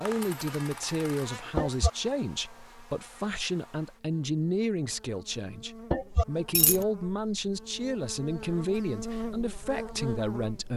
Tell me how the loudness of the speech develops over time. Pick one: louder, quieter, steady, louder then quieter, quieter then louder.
steady.